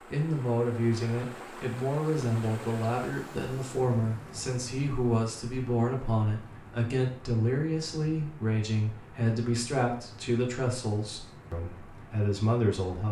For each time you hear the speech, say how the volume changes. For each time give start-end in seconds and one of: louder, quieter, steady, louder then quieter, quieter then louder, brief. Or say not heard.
0.1-13.0 steady.